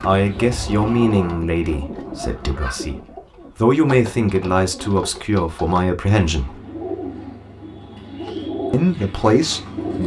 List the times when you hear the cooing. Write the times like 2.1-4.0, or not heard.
0.0-10.0.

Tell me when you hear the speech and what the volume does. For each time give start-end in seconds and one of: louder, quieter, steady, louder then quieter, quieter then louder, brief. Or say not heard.
0.0-6.6 quieter then louder
8.7-10.0 brief.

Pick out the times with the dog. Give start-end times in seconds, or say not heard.
not heard.